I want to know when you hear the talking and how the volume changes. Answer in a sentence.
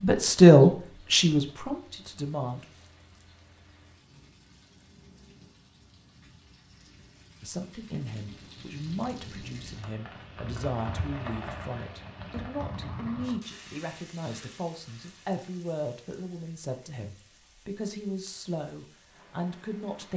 You can hear the talking briefly from 0.0 to 2.6 s; and from 7.4 to 20.1 s, at a steady volume.